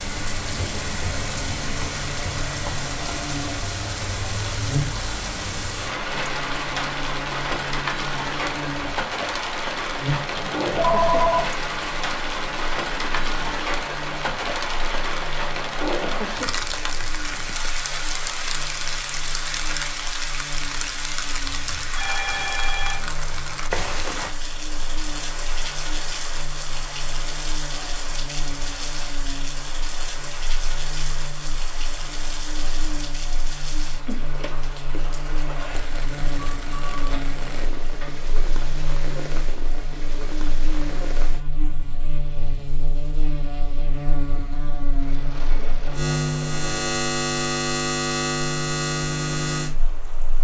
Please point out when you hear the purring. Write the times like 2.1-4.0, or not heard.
not heard.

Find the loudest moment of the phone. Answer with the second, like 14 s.
11 s.